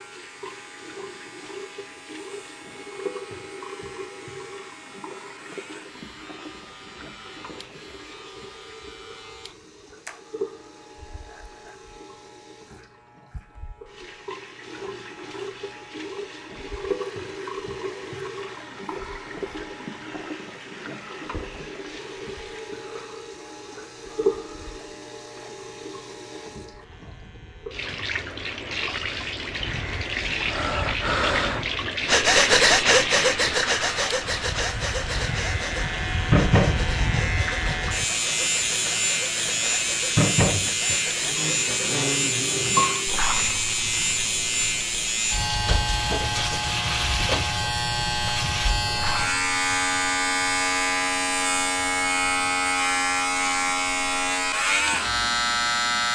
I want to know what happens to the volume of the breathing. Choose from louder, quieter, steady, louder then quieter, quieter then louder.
quieter.